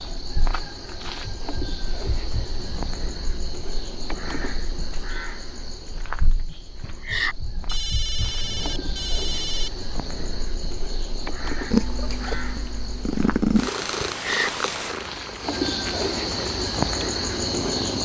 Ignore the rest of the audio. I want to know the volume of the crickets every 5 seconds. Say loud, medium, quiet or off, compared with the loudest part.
medium, medium, medium, loud.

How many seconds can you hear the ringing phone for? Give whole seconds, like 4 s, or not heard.
2 s.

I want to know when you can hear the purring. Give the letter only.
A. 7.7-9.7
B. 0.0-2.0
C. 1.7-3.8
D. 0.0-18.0
D.